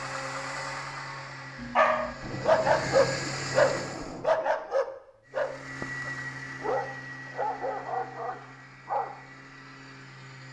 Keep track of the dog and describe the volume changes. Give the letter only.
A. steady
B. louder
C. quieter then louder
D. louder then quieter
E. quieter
E.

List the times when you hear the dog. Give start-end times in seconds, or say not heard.
1.6-9.2.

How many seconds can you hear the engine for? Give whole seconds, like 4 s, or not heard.
9 s.